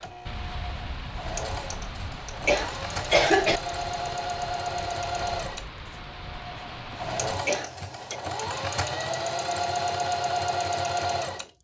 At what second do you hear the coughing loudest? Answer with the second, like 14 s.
3 s.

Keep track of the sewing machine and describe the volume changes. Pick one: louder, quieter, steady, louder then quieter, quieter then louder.
louder.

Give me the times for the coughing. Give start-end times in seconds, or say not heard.
2.5-3.6, 7.5-8.2.